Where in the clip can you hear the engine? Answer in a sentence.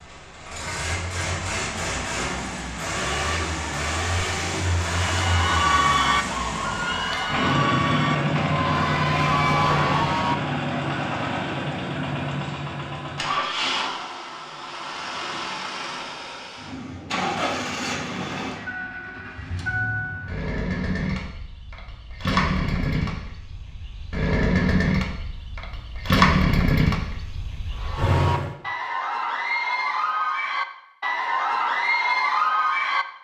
You can hear the engine from 0.0 to 28.6 s.